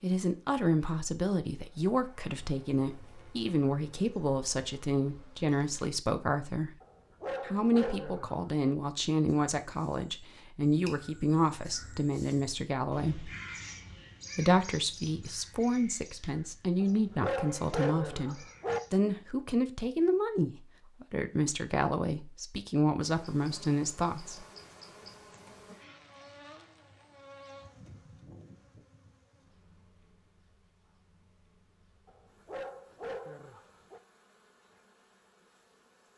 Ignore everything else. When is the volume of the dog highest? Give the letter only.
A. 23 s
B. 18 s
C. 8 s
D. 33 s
B.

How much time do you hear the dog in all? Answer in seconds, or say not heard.
6 s.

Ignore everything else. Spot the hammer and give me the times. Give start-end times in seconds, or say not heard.
not heard.